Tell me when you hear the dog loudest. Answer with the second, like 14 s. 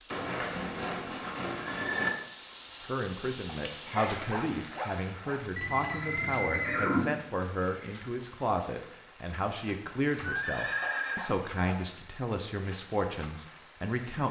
4 s.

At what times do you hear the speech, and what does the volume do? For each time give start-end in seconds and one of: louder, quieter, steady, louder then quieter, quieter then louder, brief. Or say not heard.
2.8-14.2 steady.